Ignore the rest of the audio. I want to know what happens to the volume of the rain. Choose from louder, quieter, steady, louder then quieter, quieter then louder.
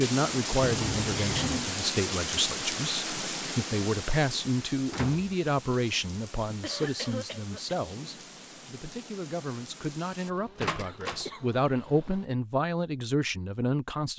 quieter.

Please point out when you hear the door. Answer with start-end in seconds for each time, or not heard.
0.6-1.7, 4.8-6.0, 10.6-11.2.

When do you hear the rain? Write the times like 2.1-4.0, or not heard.
0.0-10.3.